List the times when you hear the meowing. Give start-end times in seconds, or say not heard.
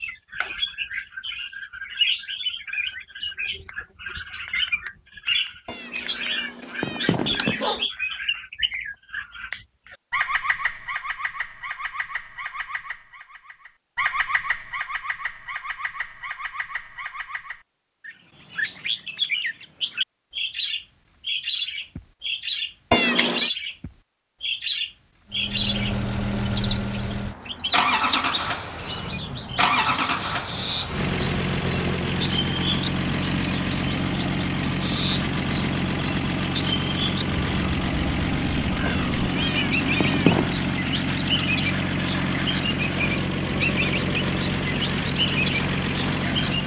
5.7-7.8, 22.9-23.5, 38.9-40.5.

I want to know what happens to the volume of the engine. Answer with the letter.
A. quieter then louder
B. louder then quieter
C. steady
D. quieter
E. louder
C.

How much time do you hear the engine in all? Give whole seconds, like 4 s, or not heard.
21 s.